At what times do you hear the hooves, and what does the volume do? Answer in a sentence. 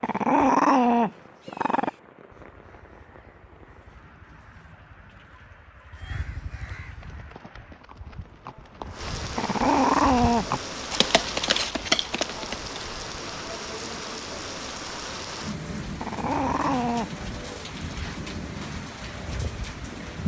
You can hear the hooves from 6.8 to 12.9 s, getting louder.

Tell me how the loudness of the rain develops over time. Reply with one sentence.
The loudness of the rain goes up.